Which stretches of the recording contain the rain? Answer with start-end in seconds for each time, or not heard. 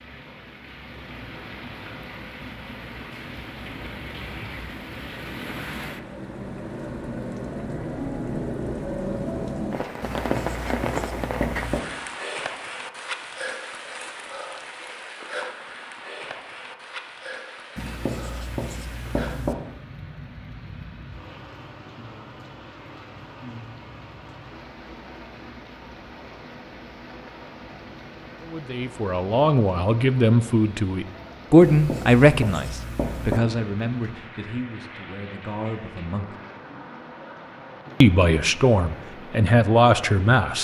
0.0-40.5.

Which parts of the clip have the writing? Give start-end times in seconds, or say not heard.
10.0-11.8, 17.8-19.6, 31.6-33.4.